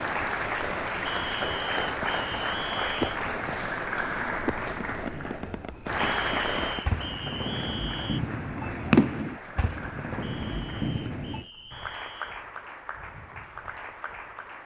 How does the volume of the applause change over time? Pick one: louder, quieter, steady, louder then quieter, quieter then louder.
quieter.